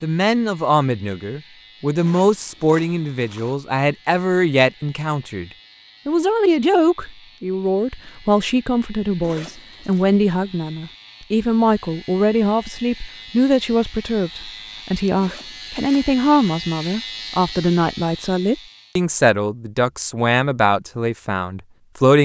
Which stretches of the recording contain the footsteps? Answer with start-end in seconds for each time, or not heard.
not heard.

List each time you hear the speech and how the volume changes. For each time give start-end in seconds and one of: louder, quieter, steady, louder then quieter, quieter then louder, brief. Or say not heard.
0.0-22.1 steady.